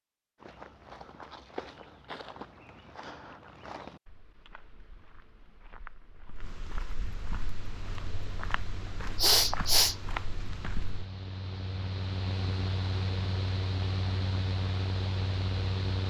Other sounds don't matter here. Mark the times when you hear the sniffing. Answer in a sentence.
The sniffing can be heard from 9.2 to 9.9 s.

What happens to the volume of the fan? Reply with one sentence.
The volume of the fan goes up.